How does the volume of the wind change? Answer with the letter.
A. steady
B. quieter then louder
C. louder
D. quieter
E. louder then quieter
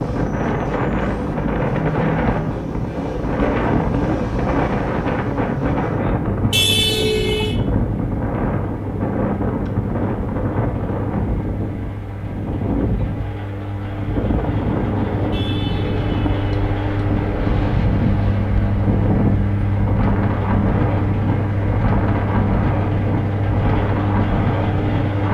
A.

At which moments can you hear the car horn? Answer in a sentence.
The car horn can be heard from 6.5 to 7.5 s and from 15.3 to 16.6 s.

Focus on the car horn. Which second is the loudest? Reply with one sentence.
The loudest moment of the car horn is at 7 seconds.